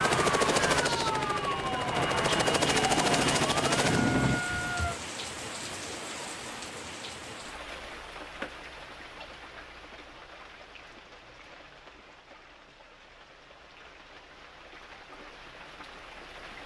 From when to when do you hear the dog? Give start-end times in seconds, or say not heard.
not heard.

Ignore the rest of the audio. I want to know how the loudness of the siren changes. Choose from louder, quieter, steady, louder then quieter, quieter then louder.
steady.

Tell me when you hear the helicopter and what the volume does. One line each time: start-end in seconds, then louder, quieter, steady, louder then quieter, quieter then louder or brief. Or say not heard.
0.0-4.4 quieter then louder.